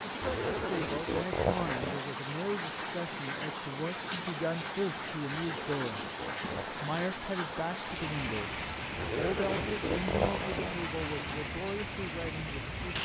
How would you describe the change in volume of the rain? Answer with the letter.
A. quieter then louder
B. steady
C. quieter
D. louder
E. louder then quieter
B.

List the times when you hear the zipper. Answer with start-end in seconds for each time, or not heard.
0.2-2.0, 5.3-6.9, 8.9-10.8.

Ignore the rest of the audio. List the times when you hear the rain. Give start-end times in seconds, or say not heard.
0.0-12.9.